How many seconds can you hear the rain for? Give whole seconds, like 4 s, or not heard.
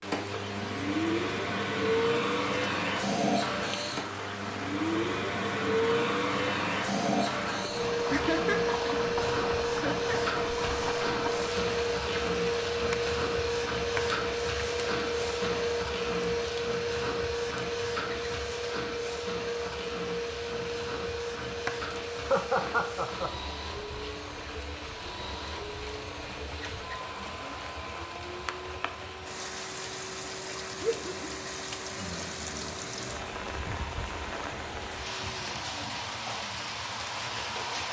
38 s.